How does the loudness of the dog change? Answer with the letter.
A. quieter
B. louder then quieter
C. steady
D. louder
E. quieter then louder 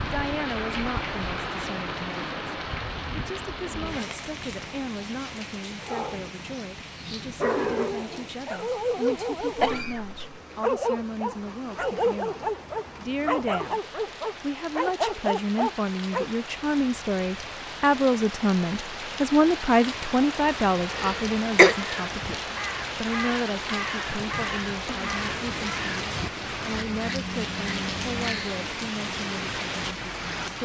C.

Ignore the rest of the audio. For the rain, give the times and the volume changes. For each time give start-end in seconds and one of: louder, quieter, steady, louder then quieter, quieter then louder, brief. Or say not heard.
0.0-30.6 quieter then louder.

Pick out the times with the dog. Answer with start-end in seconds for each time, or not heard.
5.8-16.3.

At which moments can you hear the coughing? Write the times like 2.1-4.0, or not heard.
9.6-10.2, 20.9-21.8.